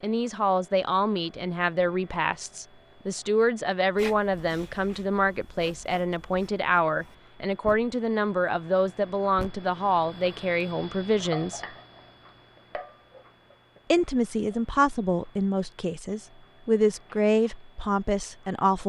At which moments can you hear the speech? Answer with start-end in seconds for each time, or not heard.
0.0-11.6, 13.9-18.8.